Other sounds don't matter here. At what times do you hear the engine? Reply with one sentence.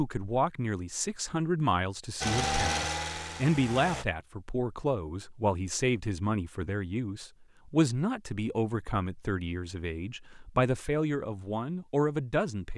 The engine can be heard from 2.2 to 4.0 s.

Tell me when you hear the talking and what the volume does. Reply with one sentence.
You can hear the talking from 0.0 to 12.7 s, at a steady volume.